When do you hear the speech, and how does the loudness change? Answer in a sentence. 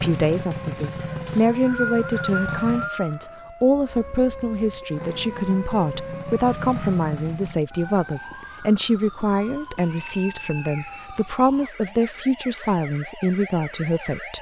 You can hear the speech from 0.0 to 14.3 s, at a steady volume.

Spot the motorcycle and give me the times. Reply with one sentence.
You can hear the motorcycle from 0.0 to 2.9 s and from 4.9 to 7.5 s.